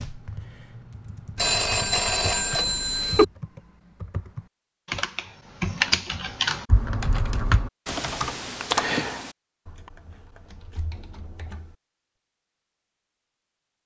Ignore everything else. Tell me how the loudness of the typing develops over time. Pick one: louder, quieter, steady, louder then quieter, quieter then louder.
louder then quieter.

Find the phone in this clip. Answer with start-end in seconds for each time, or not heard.
1.4-3.2.